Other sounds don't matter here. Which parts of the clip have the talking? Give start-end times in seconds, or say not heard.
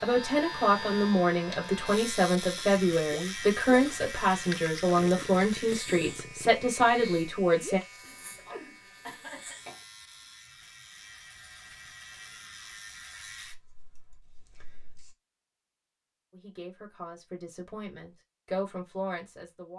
0.0-7.8, 16.3-19.7.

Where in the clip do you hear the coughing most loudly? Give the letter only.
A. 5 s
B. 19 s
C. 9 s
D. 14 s
C.